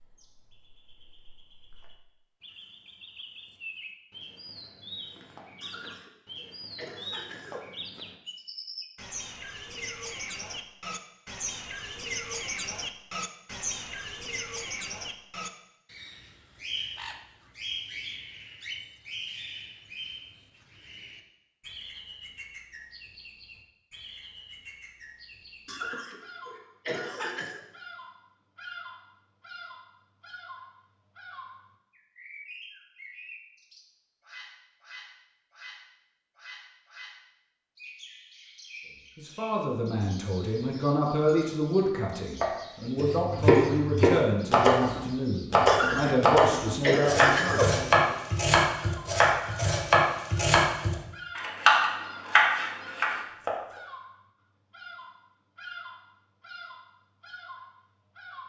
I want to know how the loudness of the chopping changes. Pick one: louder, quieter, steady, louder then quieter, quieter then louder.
steady.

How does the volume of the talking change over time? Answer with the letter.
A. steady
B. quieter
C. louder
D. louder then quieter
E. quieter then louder
A.